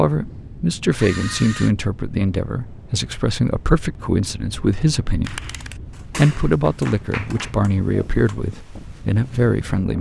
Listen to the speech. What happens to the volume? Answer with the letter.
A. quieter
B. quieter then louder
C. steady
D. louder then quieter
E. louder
C.